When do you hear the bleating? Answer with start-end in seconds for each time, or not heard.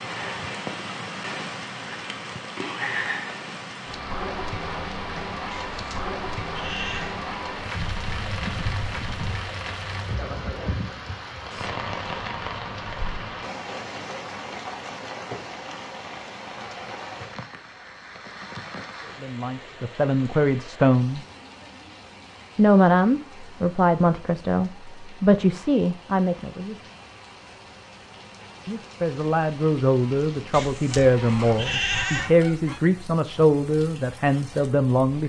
5.5-7.2, 30.5-32.3.